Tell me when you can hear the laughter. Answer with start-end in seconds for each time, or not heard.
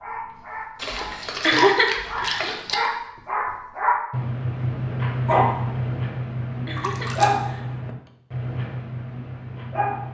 1.4-2.9, 6.7-8.1.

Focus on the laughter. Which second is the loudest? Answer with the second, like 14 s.
2 s.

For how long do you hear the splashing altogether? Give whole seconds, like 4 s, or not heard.
3 s.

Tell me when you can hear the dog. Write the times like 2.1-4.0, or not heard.
0.0-10.0.